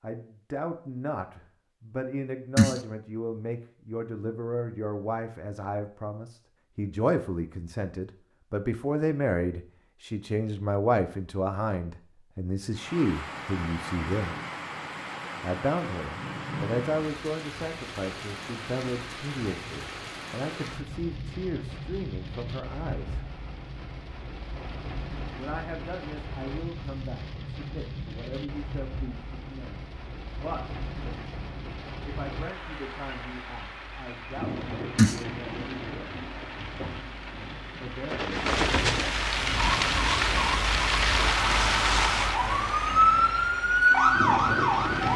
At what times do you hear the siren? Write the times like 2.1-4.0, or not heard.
39.5-45.1.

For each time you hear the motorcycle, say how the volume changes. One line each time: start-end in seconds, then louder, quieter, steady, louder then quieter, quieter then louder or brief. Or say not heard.
not heard.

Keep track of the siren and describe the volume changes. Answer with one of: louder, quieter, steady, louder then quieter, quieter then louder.
louder.